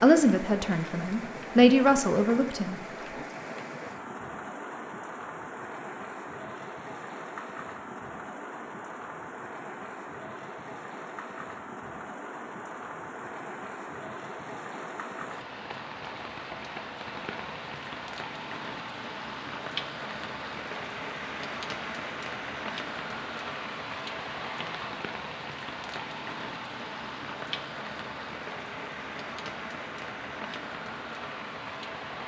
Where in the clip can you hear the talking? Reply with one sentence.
You can hear the talking from 0.0 to 2.8 s.